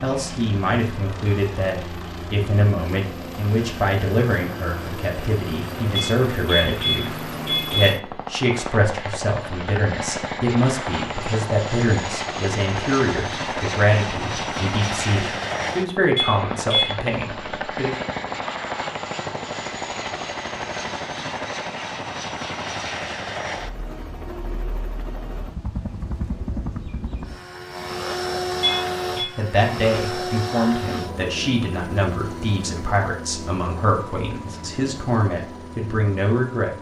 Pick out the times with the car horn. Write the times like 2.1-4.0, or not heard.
6.0-8.0, 16.1-16.9, 28.6-29.3.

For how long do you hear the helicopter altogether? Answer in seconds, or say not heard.
37 s.